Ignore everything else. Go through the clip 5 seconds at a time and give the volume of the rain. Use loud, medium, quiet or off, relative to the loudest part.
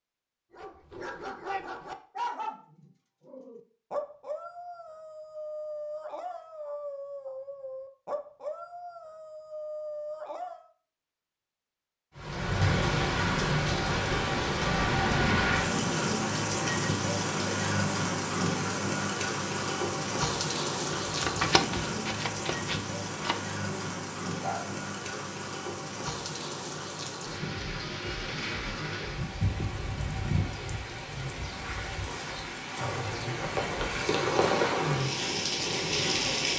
off, off, loud, loud, medium, medium, loud, loud.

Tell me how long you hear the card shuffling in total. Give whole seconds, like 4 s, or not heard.
2 s.